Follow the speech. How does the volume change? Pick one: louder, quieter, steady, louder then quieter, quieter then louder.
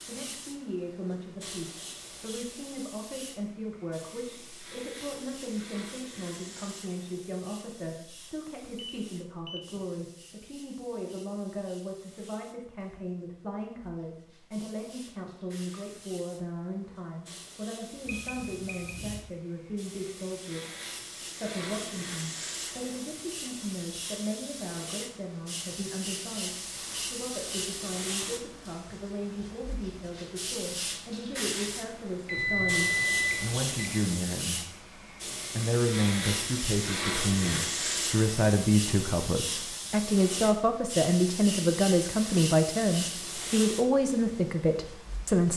louder.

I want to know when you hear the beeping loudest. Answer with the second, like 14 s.
33 s.